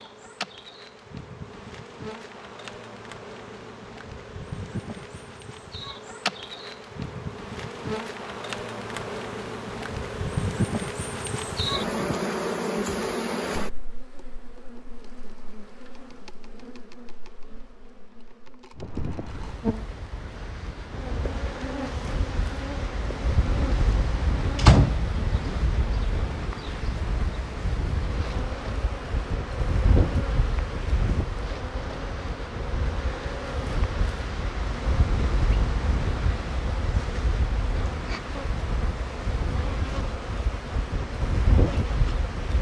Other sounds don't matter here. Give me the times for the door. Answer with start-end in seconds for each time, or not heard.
24.6-25.5.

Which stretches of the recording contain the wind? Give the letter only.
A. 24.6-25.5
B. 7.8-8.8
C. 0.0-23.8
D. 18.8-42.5
D.